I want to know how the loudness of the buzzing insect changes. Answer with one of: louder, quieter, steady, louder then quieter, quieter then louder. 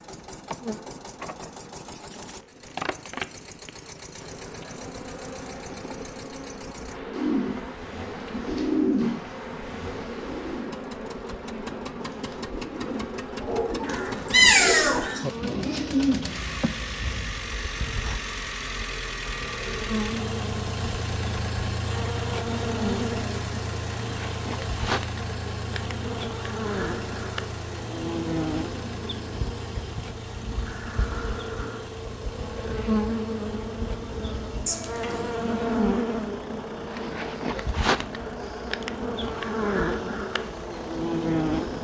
louder.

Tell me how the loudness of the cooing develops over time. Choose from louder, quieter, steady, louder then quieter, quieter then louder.
quieter then louder.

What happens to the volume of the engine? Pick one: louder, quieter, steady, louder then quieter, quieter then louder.
louder then quieter.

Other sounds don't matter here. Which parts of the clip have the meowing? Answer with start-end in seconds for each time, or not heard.
13.8-15.1, 34.6-35.9.